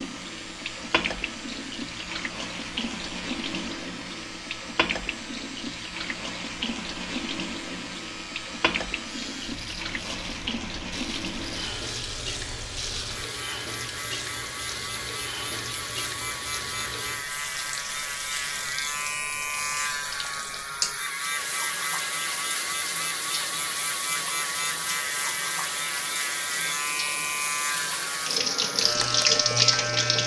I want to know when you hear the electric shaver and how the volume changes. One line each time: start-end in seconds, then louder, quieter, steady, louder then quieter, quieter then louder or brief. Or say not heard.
0.0-30.2 louder.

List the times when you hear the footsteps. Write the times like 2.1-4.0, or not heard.
not heard.